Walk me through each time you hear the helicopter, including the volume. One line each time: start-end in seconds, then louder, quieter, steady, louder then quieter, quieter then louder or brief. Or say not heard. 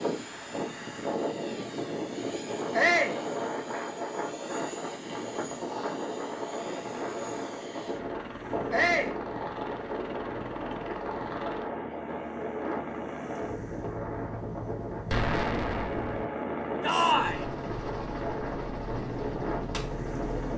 0.0-20.5 louder.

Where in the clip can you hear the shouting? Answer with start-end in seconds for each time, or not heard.
2.7-3.2, 8.7-9.2, 16.8-17.4.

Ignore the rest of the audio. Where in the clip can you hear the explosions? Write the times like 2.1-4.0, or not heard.
15.1-16.2.